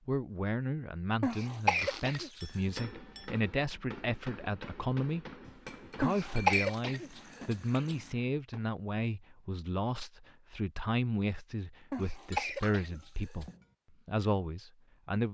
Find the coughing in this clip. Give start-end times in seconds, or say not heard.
1.2-2.4, 6.0-8.0, 11.9-13.4.